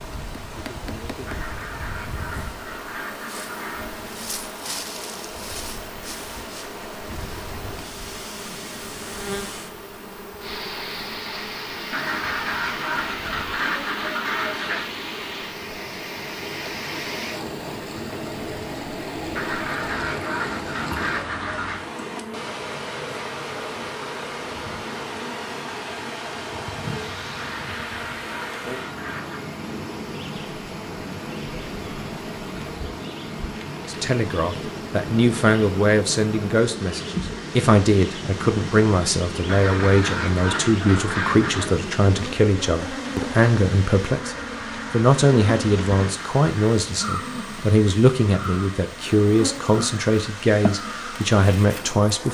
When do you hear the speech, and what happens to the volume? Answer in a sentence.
You can hear the speech from 33.9 to 52.2 s, at a steady volume.